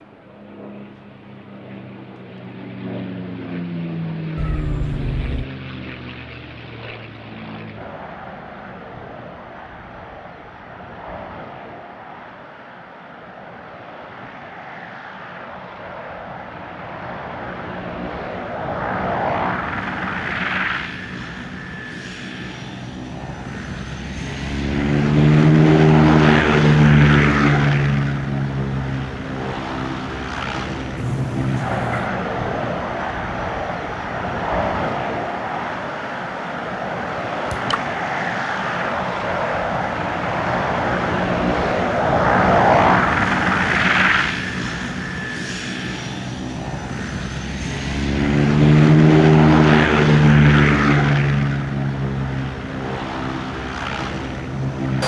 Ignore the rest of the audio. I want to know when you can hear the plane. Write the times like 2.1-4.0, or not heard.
0.0-55.0.